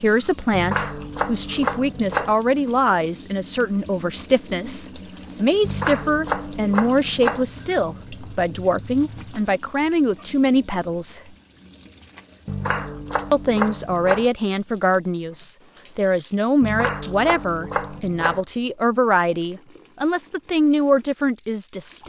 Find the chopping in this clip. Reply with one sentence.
The chopping can be heard from 0.5 to 2.4 s, from 5.6 to 7.5 s, from 12.4 to 14.3 s and from 16.6 to 18.4 s.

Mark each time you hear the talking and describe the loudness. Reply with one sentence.
The talking can be heard from 0.0 to 11.2 s, at a steady volume; and from 13.3 to 22.0 s, at a steady volume.